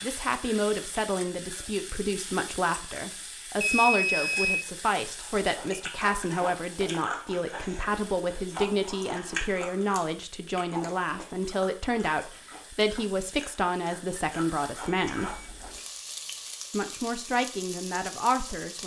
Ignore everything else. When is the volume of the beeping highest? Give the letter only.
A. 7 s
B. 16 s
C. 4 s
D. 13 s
C.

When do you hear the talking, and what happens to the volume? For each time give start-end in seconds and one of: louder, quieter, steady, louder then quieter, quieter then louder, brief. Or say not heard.
0.0-15.4 steady
16.7-18.8 brief.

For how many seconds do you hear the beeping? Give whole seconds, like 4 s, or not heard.
2 s.